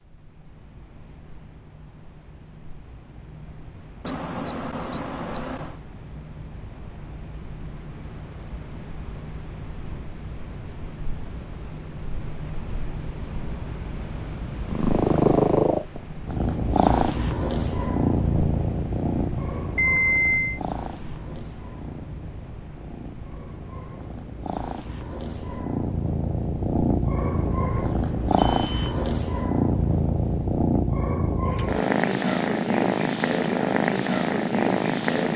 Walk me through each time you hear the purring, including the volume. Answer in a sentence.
You can hear the purring from 14.4 to 35.3 s, getting quieter then louder.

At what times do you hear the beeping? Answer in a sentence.
The beeping can be heard from 4.0 to 5.7 s, from 19.8 to 20.6 s and from 27.2 to 28.9 s.